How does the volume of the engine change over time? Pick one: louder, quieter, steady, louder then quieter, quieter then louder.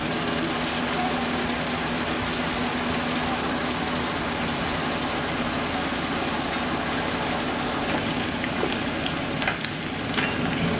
steady.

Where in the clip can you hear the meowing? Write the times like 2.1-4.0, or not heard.
not heard.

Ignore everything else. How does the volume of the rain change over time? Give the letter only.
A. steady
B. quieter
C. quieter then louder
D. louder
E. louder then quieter
A.